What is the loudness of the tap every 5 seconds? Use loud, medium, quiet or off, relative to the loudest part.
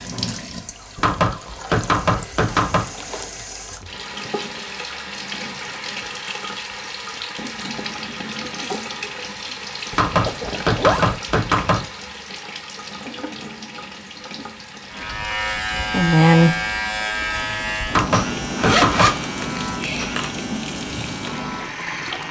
loud, loud, loud, medium, loud.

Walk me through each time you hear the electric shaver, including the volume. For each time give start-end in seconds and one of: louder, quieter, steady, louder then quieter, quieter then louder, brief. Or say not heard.
14.9-22.2 quieter.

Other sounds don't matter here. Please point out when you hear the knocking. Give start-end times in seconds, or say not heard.
0.9-2.9, 9.9-11.8, 17.9-19.1.